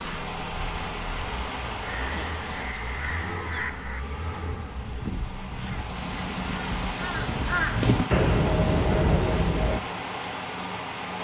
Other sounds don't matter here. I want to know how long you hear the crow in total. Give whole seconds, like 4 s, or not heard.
8 s.